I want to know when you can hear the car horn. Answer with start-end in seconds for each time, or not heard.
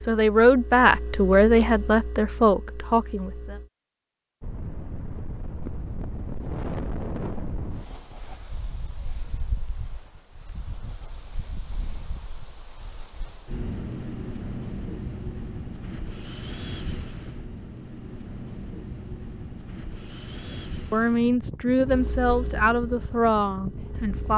not heard.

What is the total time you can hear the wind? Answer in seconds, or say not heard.
20 s.